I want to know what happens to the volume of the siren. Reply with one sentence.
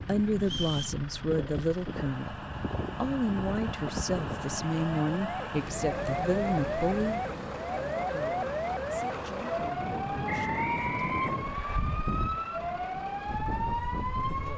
The volume of the siren stays about the same.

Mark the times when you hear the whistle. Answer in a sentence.
The whistle can be heard from 0.4 to 0.9 s and from 10.2 to 11.8 s.